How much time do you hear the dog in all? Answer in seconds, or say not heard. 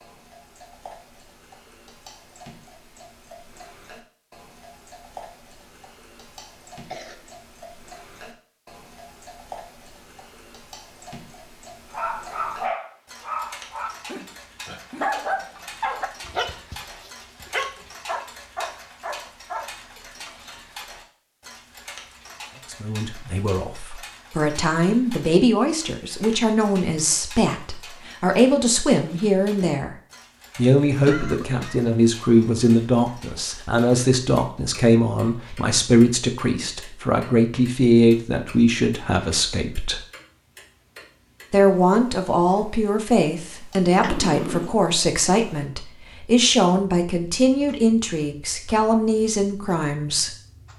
8 s.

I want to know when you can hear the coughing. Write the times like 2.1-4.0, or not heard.
6.8-7.3, 31.1-31.9, 44.0-44.8.